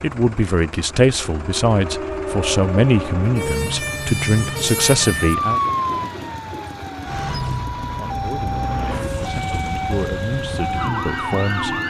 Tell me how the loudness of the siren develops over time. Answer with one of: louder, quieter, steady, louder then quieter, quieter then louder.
steady.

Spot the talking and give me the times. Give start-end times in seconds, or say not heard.
0.0-5.6, 7.8-11.8.